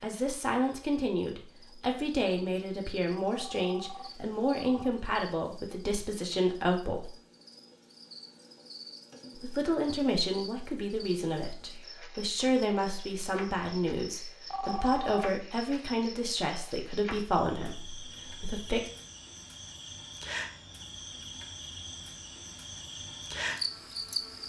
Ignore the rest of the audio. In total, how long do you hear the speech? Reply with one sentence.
You can hear the speech for 17 seconds altogether.